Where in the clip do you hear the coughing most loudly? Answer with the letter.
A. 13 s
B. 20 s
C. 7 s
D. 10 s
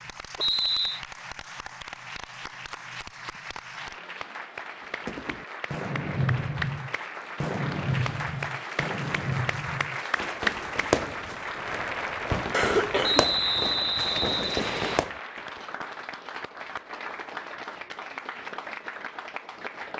A.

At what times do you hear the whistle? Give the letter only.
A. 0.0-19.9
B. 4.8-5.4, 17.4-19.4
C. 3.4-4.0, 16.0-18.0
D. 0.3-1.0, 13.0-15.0
D.